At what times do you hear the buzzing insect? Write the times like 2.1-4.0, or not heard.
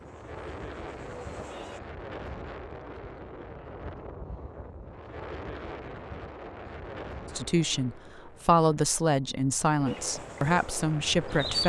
0.0-1.8, 9.8-11.6.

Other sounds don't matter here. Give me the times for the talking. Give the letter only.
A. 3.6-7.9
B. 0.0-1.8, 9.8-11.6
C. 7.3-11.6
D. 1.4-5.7
C.